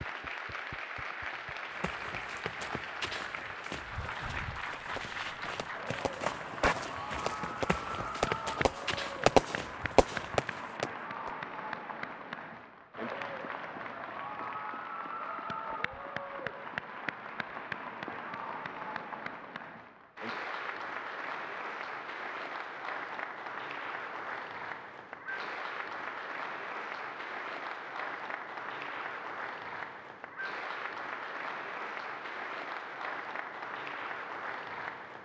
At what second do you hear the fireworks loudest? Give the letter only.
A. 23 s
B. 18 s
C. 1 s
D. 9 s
D.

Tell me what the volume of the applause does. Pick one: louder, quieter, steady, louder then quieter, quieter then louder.
steady.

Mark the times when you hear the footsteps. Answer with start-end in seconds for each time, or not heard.
1.7-10.8.